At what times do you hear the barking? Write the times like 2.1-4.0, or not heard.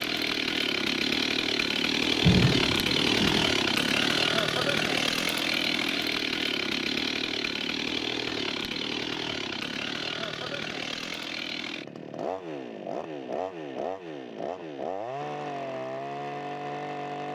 not heard.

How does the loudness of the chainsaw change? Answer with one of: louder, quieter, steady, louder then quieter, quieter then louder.
quieter.